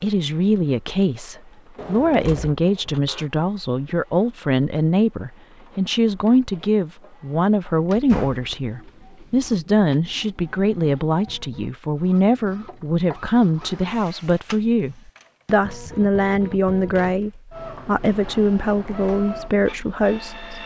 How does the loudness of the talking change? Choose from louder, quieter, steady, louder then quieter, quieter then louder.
steady.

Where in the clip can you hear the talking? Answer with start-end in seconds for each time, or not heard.
0.0-20.4.